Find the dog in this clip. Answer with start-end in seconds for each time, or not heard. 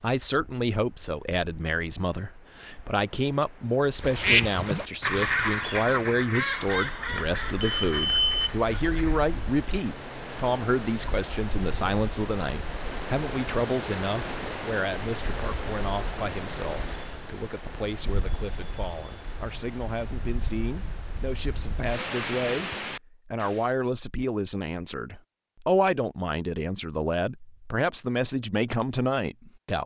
not heard.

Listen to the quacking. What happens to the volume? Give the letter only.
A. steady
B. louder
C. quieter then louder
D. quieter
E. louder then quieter
D.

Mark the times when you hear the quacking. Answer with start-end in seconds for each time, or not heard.
4.0-9.2.